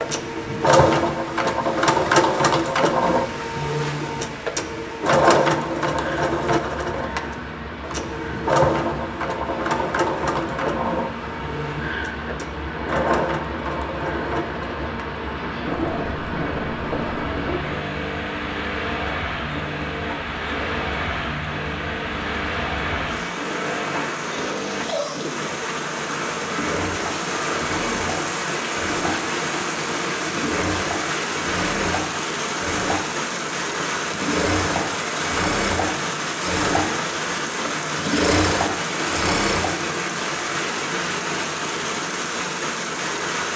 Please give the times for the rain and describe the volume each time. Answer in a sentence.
You can hear the rain from 0.0 to 43.5 s, getting louder.